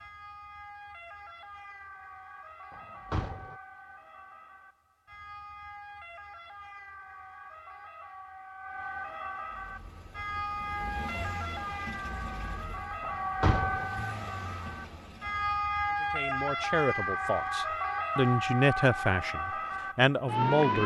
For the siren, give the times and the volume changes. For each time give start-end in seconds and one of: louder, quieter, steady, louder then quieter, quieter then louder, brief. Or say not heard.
0.0-20.8 louder.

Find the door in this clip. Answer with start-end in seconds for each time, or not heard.
2.7-3.5, 13.0-13.8.